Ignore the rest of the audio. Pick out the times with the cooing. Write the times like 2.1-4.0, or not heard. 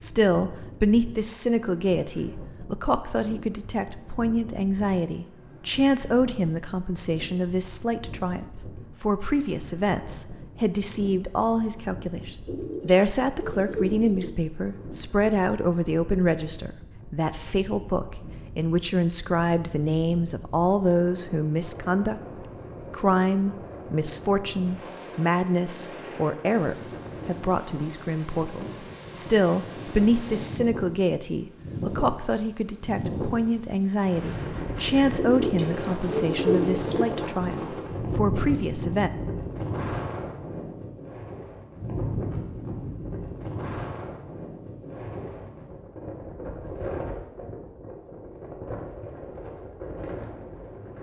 12.4-14.3, 35.1-37.0.